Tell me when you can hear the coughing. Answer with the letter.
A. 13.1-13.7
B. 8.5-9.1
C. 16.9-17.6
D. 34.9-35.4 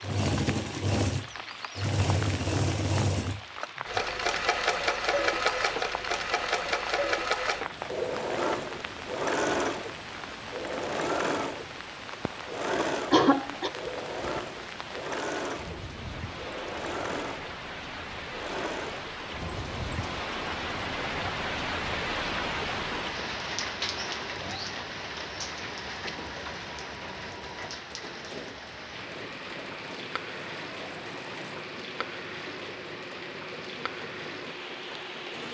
A.